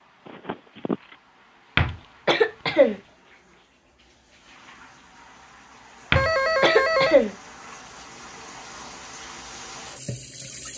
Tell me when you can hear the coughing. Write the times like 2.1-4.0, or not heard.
1.8-3.0, 6.1-7.3.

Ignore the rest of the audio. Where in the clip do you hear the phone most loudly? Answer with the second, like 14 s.
7 s.